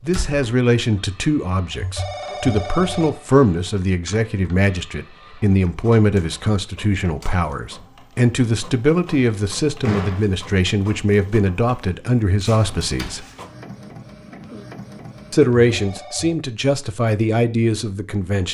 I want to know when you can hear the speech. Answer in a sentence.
You can hear the speech from 0.0 to 13.2 s and from 15.3 to 18.4 s.